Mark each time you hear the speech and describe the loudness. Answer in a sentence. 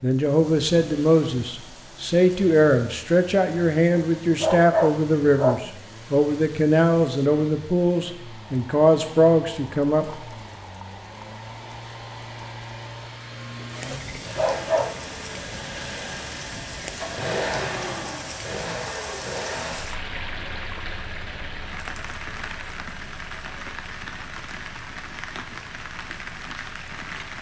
The speech can be heard from 0.0 to 10.1 s, at a steady volume.